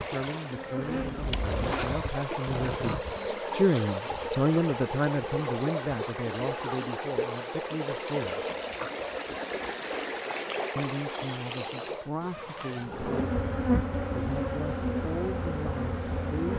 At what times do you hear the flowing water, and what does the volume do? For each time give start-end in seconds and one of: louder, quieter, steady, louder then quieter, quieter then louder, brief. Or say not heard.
0.0-16.5 quieter.